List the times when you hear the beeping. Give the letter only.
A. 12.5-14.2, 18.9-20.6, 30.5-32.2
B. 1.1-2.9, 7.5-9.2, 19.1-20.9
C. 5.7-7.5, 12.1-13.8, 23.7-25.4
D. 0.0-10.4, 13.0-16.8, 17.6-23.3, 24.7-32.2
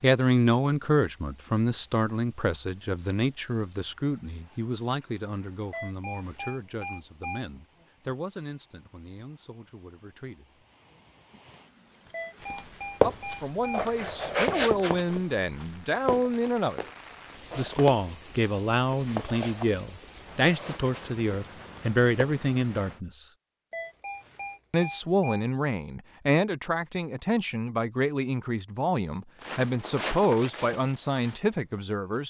C.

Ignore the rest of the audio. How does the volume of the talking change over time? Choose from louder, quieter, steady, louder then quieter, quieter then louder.
quieter then louder.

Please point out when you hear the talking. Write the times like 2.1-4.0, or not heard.
0.0-10.4, 13.0-16.8, 17.6-23.3, 24.7-32.2.